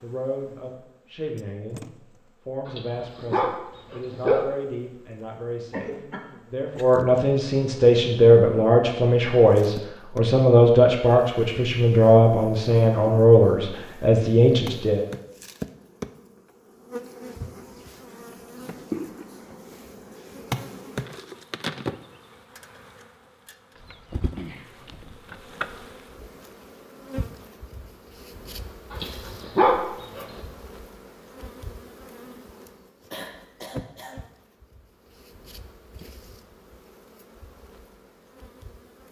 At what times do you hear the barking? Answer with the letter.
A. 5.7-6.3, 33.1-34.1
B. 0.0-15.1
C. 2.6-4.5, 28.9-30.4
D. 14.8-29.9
C.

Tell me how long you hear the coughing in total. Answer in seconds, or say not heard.
2 s.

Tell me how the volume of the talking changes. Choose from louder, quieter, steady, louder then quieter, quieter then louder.
louder.